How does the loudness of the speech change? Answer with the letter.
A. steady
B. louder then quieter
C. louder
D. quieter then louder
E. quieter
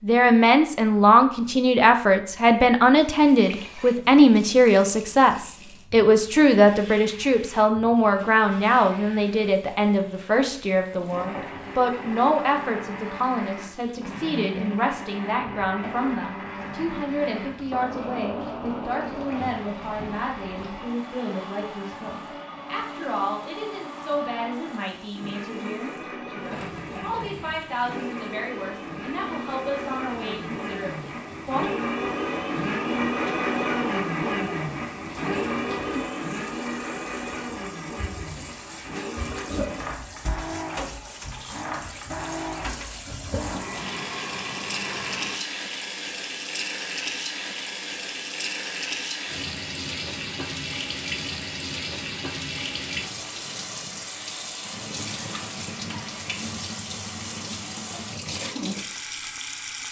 E.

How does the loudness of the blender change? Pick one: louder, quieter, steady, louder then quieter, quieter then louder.
louder then quieter.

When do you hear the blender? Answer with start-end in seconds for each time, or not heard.
11.1-45.4.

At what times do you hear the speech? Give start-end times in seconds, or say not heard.
0.0-31.7.